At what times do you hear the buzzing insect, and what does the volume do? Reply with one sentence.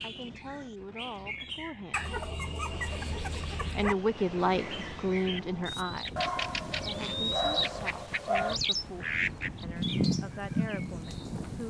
You can't hear the buzzing insect here.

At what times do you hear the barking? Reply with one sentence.
You can hear the barking from 1.9 to 4.0 s and from 6.2 to 8.6 s.